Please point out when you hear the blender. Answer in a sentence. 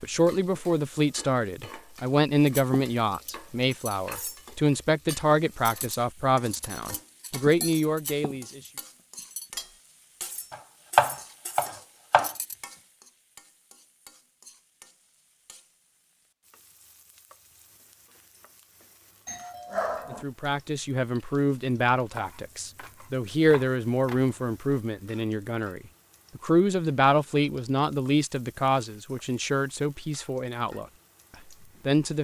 You can't hear the blender here.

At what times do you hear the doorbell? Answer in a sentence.
You can hear the doorbell from 19.2 to 20.2 s.